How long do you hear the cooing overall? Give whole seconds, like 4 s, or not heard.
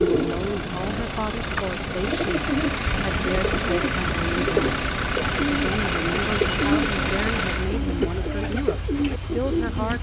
10 s.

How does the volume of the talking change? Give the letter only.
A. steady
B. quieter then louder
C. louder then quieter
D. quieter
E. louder
A.